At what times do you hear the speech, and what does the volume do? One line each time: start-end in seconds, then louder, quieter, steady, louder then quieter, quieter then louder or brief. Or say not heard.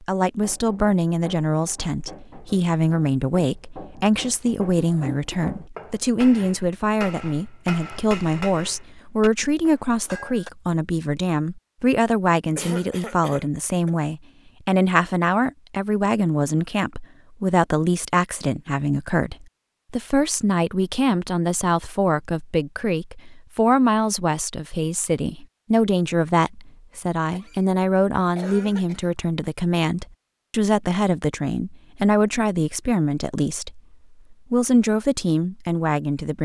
0.0-36.4 steady.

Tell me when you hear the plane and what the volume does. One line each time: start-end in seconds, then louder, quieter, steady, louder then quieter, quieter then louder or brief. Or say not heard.
not heard.